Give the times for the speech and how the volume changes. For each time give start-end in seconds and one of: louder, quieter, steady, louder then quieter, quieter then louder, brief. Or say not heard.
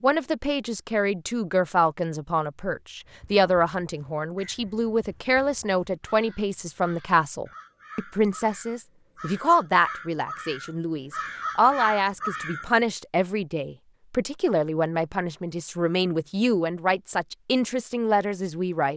0.0-18.9 steady.